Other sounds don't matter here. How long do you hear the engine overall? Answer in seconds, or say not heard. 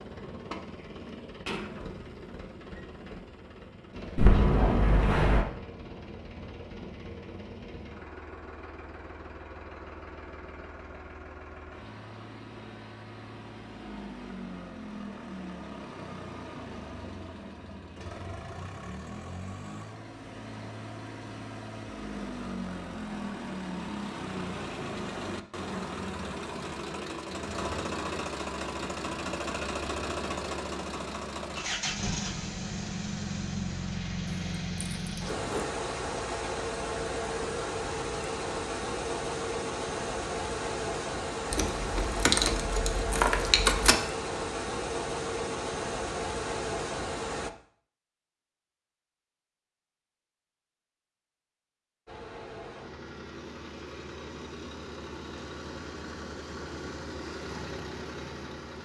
54 s.